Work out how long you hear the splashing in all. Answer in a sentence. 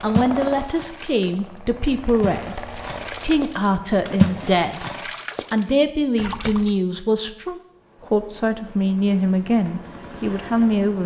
The splashing can be heard for 7 seconds in total.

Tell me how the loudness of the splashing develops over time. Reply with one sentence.
The volume of the splashing goes up, then down.